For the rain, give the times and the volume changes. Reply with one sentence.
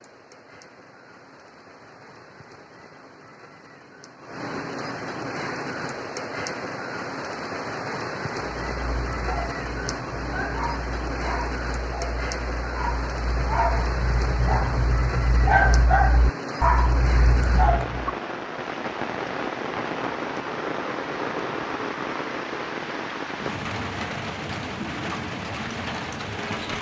The rain can be heard from 0.0 to 26.7 s, getting louder.